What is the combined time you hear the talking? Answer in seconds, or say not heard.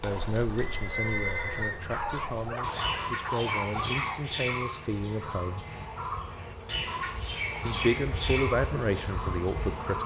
8 s.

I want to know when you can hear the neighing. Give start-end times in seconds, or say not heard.
0.5-1.8.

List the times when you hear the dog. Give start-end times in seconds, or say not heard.
1.9-4.2.